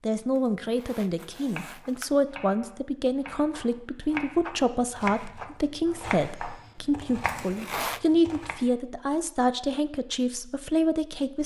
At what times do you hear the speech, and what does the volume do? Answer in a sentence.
The speech can be heard from 0.0 to 11.4 s, at a steady volume.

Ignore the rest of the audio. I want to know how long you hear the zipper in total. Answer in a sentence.
The zipper can be heard for 2 seconds in total.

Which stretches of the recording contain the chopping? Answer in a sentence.
You can hear the chopping from 1.6 to 8.6 s.